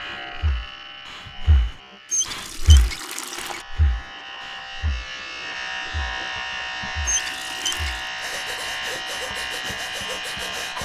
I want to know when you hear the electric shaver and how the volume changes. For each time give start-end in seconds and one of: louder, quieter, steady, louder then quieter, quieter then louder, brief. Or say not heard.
0.0-10.8 louder.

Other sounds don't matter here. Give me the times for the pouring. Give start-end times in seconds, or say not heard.
2.1-3.6, 7.0-8.1.